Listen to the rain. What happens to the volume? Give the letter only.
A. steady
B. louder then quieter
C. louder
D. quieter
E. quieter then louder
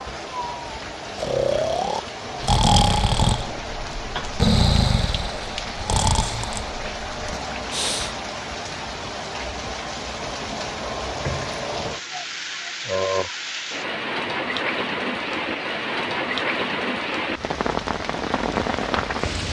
C.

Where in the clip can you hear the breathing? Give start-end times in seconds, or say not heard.
0.5-8.2.